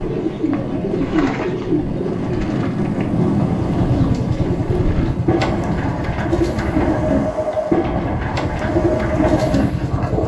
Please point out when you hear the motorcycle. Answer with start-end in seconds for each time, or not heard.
3.4-10.2.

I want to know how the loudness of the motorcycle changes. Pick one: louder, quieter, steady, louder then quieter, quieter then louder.
quieter.